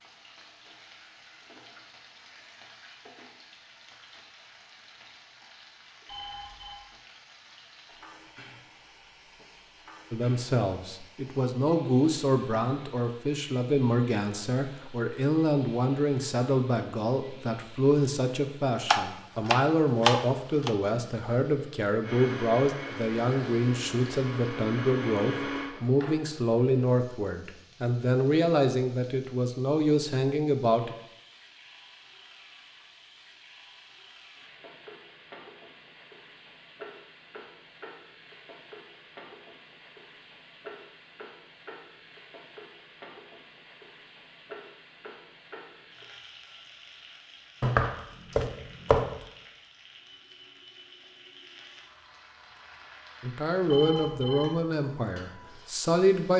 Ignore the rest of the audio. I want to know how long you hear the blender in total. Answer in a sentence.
You can hear the blender for 4 seconds altogether.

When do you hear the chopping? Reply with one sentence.
You can hear the chopping from 18.9 to 20.7 s and from 47.6 to 49.1 s.